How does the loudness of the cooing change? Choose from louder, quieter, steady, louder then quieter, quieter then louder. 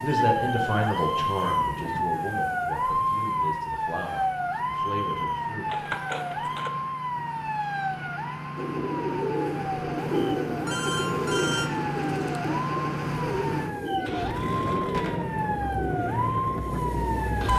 quieter.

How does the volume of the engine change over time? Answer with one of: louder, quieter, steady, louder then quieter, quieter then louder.
louder.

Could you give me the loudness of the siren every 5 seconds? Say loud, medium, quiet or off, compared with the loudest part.
loud, medium, medium, loud.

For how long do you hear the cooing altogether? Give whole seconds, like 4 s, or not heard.
9 s.